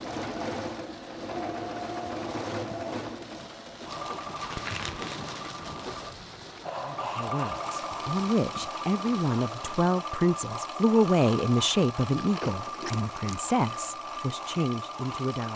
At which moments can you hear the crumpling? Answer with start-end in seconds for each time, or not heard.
3.9-5.2, 12.2-13.4.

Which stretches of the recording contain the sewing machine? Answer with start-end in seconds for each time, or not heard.
0.0-15.5.